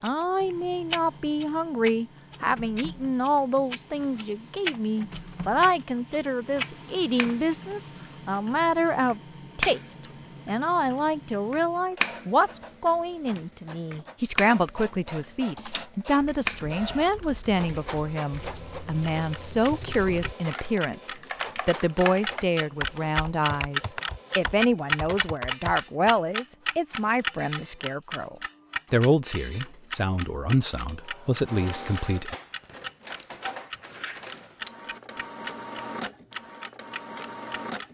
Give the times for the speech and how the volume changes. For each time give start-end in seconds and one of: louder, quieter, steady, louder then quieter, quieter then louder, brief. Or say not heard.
0.0-32.4 steady.